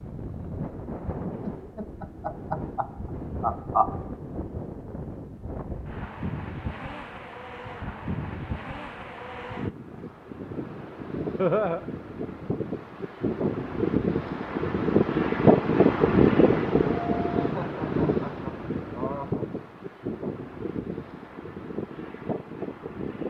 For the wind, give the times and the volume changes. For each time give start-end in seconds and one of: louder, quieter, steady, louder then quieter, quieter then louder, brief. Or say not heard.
0.0-23.2 louder then quieter.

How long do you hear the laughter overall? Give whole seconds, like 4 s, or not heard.
5 s.